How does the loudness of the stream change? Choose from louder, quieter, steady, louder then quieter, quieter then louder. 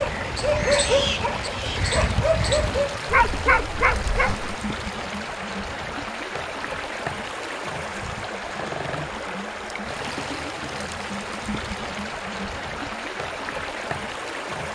steady.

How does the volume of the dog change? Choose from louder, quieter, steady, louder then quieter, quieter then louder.
quieter then louder.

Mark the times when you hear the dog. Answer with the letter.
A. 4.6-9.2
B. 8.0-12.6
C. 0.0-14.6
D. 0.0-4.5
D.